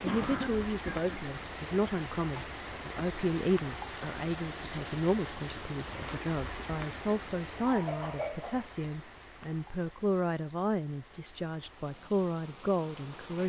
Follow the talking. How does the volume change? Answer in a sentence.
The volume of the talking stays about the same.